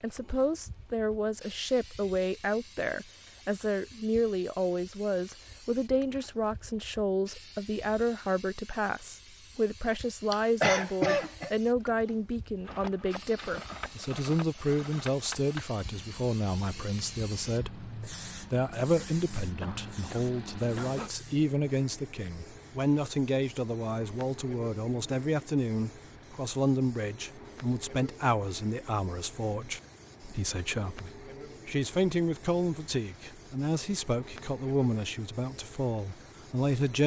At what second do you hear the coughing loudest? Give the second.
11 s.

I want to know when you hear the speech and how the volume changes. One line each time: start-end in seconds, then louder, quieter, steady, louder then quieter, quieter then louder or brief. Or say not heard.
0.0-37.0 steady.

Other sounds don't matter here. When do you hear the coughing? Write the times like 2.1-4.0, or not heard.
10.3-11.5, 19.6-21.1.